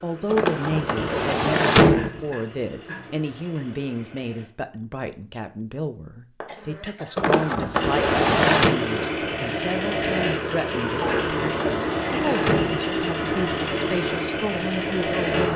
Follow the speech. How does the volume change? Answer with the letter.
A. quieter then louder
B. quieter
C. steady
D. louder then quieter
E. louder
C.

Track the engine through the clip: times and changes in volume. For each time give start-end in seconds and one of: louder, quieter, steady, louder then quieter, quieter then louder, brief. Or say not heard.
0.0-4.5 quieter
7.7-15.5 steady.